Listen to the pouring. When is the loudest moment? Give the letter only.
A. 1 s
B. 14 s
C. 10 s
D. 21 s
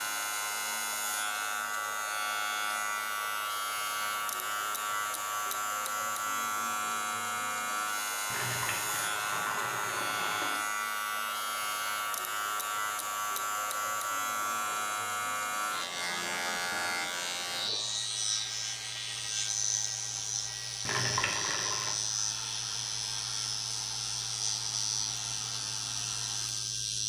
D.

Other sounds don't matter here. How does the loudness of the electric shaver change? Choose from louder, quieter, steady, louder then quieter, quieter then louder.
steady.